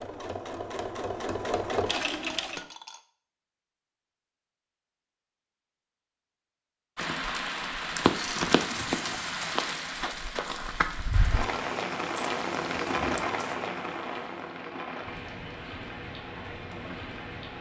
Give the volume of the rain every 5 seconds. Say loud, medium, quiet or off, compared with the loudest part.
off, loud, loud, medium.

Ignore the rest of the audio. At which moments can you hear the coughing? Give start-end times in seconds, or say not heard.
not heard.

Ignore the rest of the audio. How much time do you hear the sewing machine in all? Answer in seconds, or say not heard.
3 s.